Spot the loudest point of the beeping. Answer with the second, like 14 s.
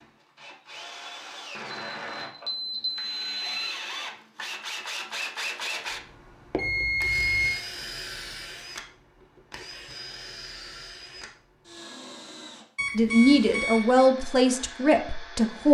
7 s.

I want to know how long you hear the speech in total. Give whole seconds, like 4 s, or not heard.
3 s.